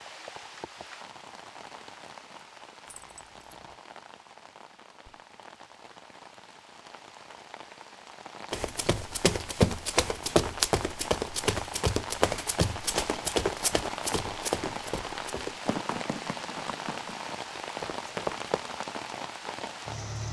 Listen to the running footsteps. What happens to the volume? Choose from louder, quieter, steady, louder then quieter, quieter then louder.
quieter.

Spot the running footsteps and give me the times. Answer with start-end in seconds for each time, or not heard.
8.5-18.6.